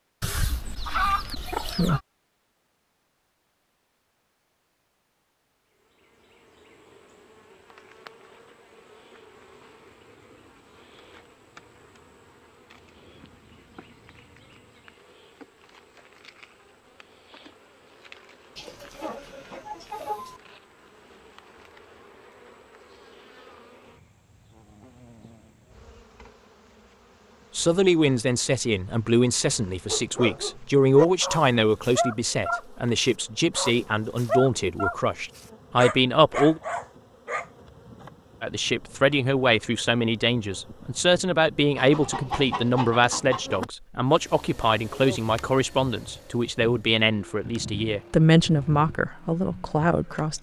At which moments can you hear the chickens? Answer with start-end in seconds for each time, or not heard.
0.2-2.0, 18.6-20.4, 41.8-43.6.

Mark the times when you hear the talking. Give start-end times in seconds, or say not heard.
27.6-36.6, 38.4-50.3.